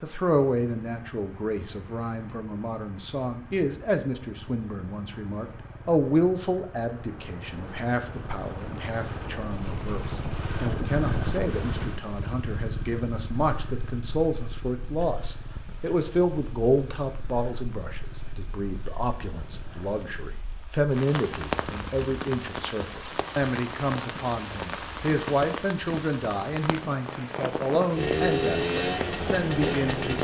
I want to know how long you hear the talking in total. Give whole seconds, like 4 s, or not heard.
30 s.